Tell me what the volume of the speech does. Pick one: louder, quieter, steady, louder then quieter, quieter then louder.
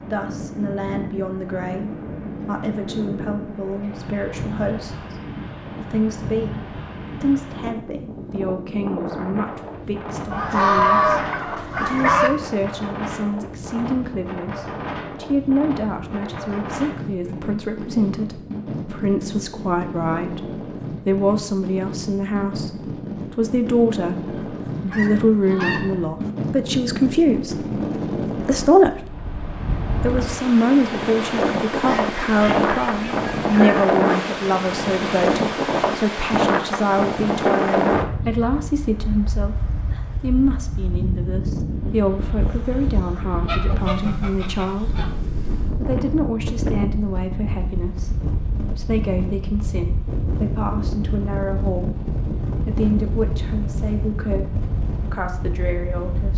louder then quieter.